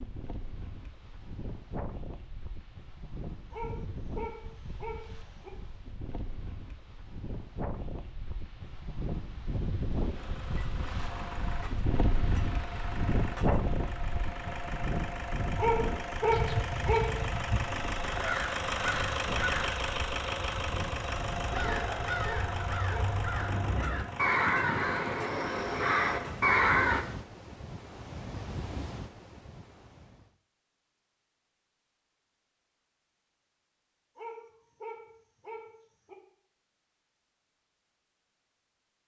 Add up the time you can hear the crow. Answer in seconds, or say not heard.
11 s.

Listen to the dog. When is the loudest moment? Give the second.
16 s.